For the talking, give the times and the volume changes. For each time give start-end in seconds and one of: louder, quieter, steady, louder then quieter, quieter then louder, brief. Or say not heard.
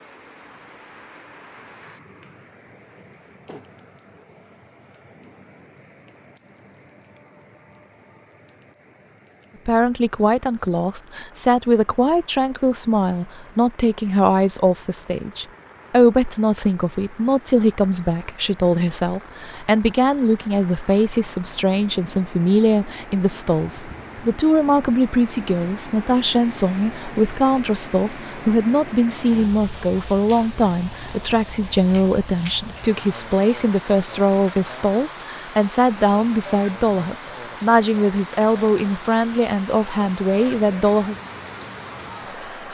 9.7-41.1 steady.